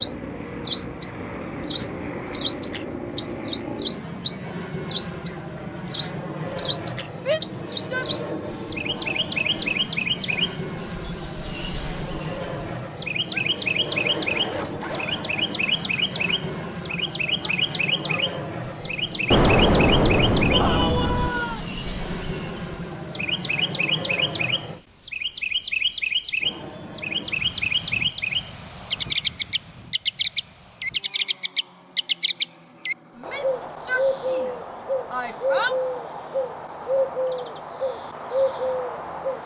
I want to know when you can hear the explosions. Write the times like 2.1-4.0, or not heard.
19.3-21.3.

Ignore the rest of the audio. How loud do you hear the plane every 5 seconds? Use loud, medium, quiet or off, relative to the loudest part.
loud, loud, loud, loud, loud, medium, quiet, quiet.